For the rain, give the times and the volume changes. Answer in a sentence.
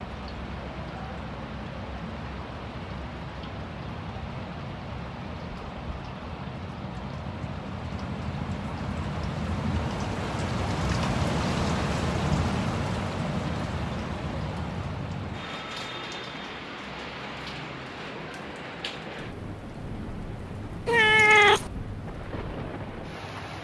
The rain can be heard from 0.0 to 23.6 s, getting louder then quieter.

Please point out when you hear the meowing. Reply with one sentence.
The meowing can be heard from 20.9 to 21.7 s.